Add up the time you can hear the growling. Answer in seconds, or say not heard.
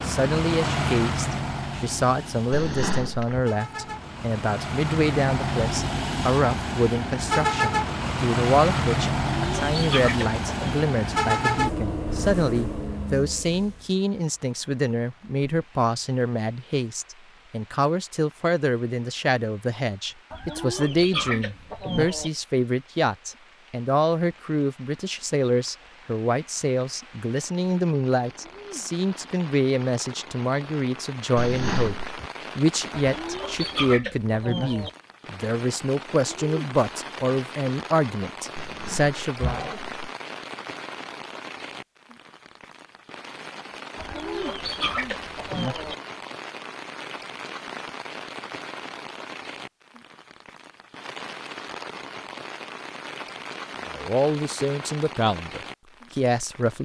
3 s.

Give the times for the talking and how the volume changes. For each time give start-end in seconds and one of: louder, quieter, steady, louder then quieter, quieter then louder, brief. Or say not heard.
0.0-39.6 steady
53.9-56.7 brief.